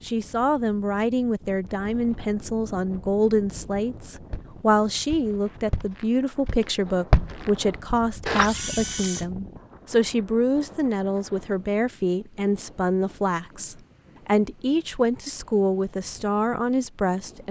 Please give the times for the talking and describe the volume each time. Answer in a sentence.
The talking can be heard from 0.0 to 17.4 s, at a steady volume.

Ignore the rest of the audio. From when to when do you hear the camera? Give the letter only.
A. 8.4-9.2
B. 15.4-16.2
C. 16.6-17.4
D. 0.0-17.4
A.